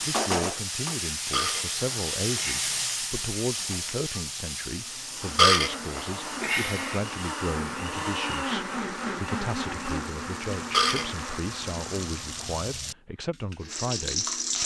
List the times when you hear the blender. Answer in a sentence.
You can hear the blender from 4.8 to 14.6 s.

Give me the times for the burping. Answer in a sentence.
The burping can be heard from 1.3 to 2.8 s, from 5.3 to 7.0 s and from 10.7 to 11.2 s.